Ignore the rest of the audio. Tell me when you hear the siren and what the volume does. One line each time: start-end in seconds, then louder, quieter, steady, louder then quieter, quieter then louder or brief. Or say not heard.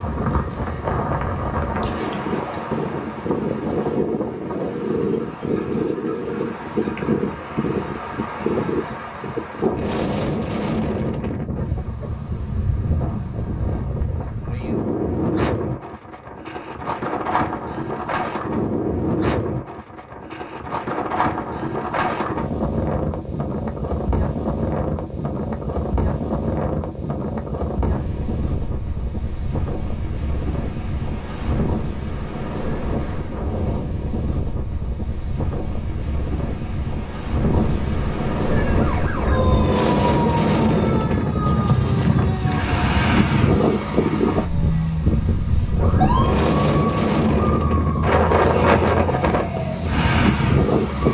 38.5-51.0 steady.